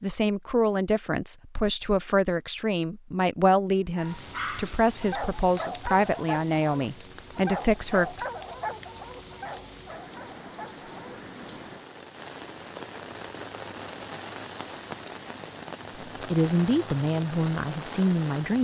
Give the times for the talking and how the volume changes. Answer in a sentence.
The talking can be heard from 0.0 to 8.3 s, at a steady volume; and briefly from 16.2 to 18.5 s.